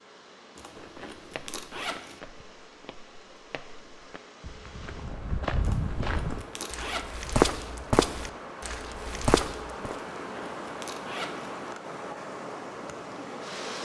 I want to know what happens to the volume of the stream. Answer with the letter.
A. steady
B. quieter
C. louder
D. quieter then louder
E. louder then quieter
C.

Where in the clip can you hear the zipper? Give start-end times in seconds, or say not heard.
0.6-2.2, 5.6-7.0, 10.2-11.6.